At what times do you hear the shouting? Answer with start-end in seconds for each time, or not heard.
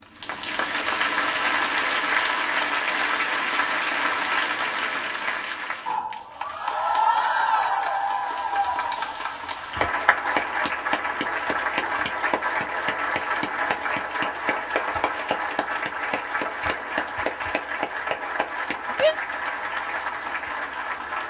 18.9-19.5.